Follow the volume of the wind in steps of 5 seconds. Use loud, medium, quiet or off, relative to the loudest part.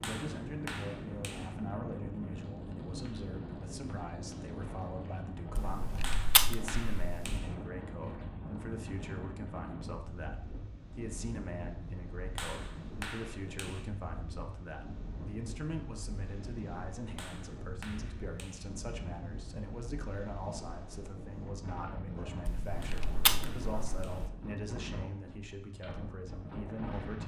loud, loud, medium, medium, loud, loud.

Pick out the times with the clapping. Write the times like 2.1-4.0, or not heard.
0.0-1.6, 6.0-7.5, 12.3-13.9, 17.1-18.7, 22.8-24.4.